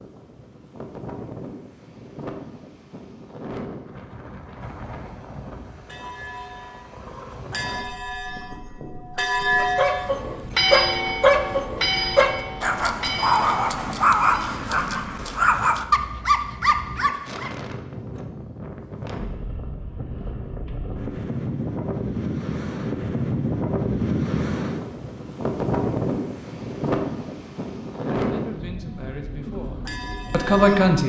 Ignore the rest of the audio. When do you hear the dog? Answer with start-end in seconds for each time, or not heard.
9.6-17.5.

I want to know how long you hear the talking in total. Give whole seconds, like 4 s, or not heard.
3 s.